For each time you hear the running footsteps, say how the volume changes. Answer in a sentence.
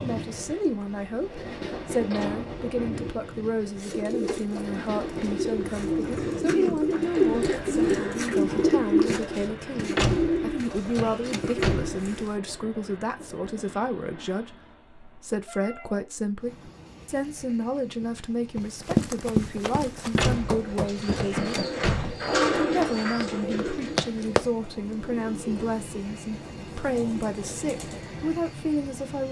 You can hear the running footsteps from 18.0 to 24.5 s, getting quieter then louder.